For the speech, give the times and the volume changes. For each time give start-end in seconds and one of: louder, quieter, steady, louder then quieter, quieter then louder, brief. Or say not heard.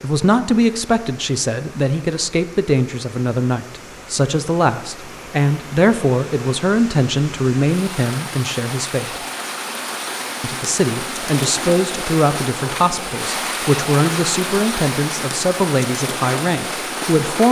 0.0-9.2 steady
10.4-17.4 steady.